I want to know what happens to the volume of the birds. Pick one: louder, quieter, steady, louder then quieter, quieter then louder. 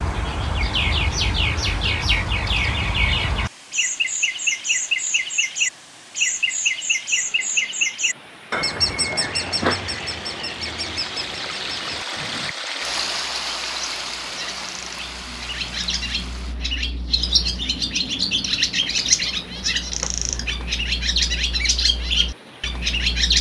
quieter then louder.